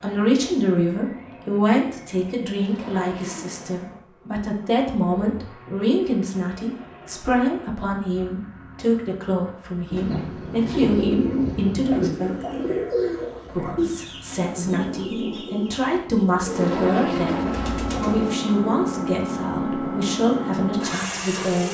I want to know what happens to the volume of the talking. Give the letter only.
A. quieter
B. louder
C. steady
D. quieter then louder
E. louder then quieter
C.